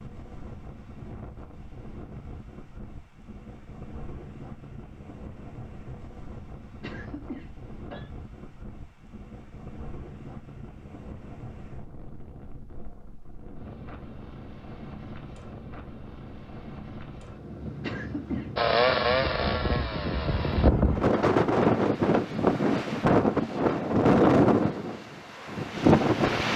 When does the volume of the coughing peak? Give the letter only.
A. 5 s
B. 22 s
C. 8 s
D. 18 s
D.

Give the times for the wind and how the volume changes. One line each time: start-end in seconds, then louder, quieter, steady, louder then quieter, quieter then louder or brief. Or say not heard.
0.0-26.5 louder.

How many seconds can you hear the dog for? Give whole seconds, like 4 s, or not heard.
not heard.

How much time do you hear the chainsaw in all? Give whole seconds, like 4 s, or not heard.
2 s.